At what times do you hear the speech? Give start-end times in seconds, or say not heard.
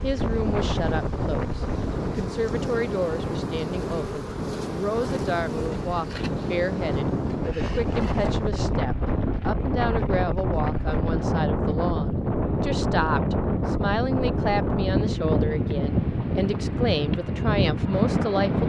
0.0-18.6.